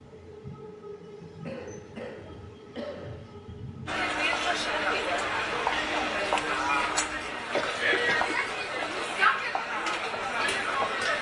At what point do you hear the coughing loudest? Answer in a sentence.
The loudest moment of the coughing is at 8 seconds.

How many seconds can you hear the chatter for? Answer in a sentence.
You can hear the chatter for 7 seconds altogether.